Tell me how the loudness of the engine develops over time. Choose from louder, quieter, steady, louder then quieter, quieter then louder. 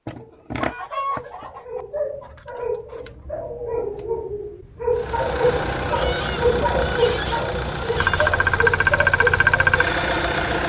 louder.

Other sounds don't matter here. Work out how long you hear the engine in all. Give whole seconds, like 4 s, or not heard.
6 s.